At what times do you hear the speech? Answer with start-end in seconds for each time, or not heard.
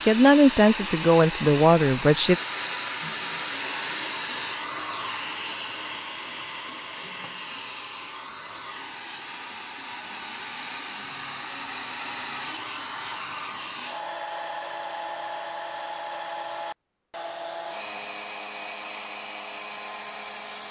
0.0-2.4.